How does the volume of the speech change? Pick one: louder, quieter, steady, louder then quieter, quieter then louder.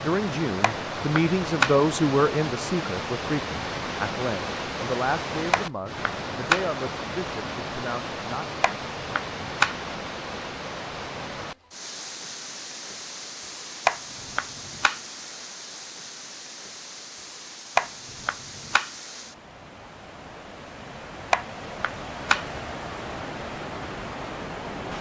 quieter.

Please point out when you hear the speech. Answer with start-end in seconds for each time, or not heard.
0.0-8.6.